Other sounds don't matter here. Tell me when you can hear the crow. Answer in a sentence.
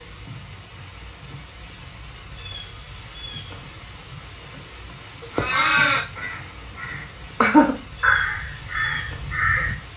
You can hear the crow from 5.3 to 9.8 s.